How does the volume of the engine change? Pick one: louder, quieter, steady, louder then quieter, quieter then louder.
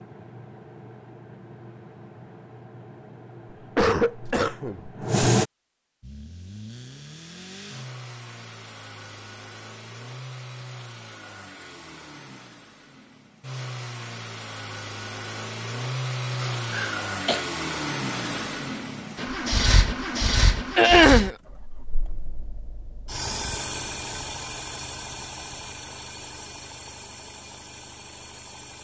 louder then quieter.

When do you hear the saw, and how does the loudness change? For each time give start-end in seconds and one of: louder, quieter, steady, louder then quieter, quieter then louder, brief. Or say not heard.
not heard.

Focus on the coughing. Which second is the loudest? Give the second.
21 s.